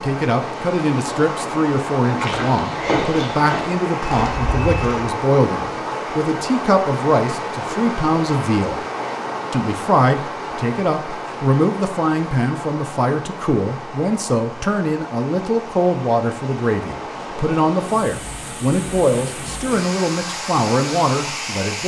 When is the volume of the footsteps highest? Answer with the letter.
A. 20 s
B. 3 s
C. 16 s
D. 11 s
B.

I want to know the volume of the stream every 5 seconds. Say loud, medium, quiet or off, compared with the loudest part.
loud, loud, medium, medium, loud.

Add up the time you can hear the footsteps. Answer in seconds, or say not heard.
3 s.